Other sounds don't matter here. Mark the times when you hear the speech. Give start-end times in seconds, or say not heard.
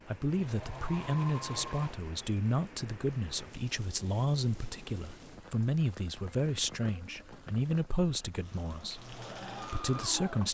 0.1-10.4.